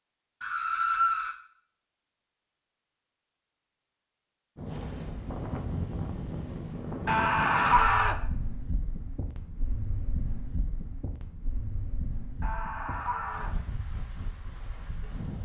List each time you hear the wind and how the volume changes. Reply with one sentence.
The wind can be heard from 4.5 to 15.4 s, getting quieter.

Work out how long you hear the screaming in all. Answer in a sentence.
The screaming can be heard for 3 seconds in total.